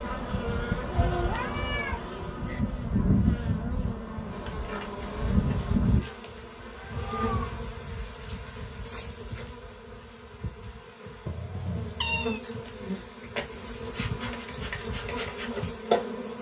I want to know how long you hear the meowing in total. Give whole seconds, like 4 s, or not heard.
4 s.